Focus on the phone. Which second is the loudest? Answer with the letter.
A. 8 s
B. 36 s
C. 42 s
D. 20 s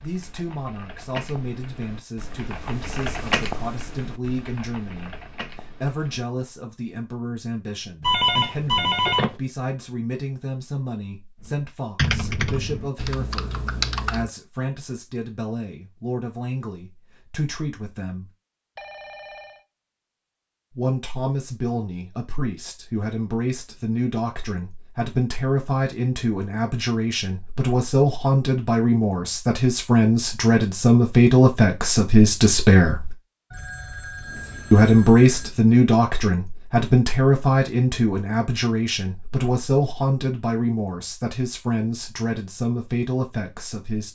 A.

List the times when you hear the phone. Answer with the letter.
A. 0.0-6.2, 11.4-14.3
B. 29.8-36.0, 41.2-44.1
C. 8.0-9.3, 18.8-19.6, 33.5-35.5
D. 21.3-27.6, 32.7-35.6
C.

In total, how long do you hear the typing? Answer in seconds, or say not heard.
9 s.